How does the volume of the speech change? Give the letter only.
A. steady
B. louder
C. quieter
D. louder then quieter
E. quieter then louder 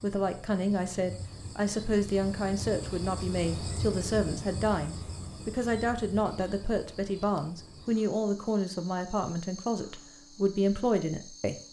A.